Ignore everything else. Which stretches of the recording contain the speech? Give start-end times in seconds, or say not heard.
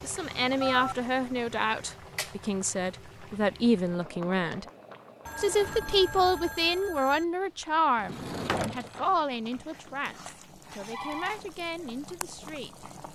0.0-4.7, 5.4-12.8.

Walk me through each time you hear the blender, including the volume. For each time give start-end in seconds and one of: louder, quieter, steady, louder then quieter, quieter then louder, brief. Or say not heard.
not heard.